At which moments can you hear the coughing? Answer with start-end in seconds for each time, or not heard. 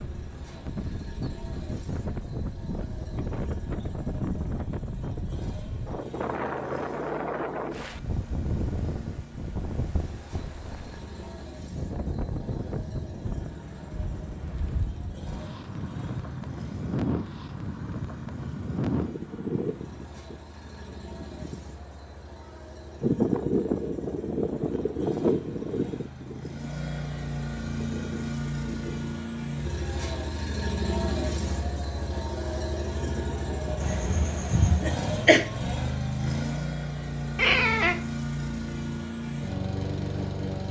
33.8-35.5.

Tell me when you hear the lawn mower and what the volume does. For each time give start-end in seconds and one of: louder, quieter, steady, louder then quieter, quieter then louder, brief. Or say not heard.
0.0-40.6 louder.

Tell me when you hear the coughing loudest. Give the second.
35 s.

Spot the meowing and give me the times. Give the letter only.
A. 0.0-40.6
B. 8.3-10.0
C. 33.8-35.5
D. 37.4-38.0
D.